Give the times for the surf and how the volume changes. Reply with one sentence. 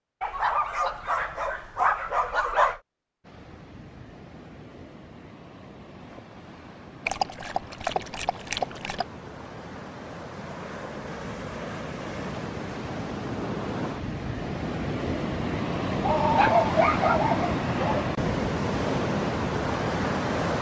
The surf can be heard from 3.2 to 20.5 s, getting louder.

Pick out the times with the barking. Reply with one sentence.
The barking can be heard from 0.2 to 2.8 s, from 7.0 to 9.1 s and from 16.1 to 18.1 s.